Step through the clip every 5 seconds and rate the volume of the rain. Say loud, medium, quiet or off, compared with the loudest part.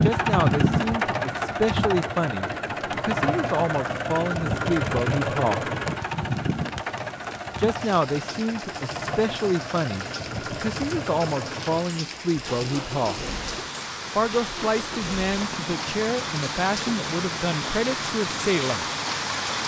quiet, medium, medium, loud.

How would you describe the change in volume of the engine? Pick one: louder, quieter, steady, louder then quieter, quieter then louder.
quieter.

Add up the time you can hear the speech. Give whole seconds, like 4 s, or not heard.
16 s.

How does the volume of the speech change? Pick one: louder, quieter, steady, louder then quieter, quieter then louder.
steady.